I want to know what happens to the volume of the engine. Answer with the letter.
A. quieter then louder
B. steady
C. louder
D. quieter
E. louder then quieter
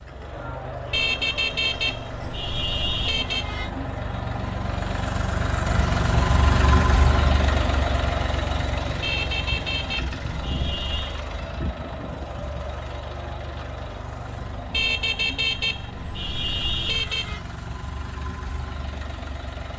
E.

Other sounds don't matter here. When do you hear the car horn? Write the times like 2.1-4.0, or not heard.
0.9-3.7, 9.0-11.2, 14.7-17.4.